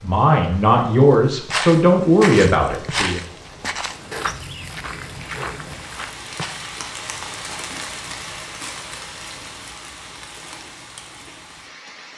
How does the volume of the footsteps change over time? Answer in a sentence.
The volume of the footsteps goes down.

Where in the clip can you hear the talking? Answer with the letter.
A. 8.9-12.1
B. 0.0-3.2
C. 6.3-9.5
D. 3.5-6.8
B.